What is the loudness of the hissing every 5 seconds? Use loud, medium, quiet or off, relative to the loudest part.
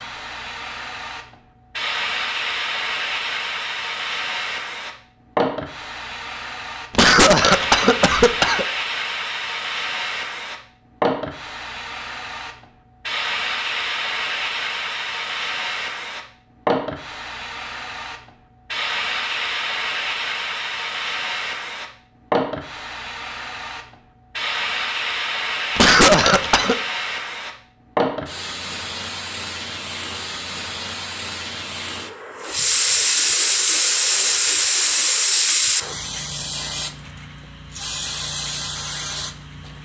medium, medium, medium, medium, medium, medium, loud, loud.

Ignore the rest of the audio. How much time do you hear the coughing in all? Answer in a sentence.
You can hear the coughing for 3 seconds altogether.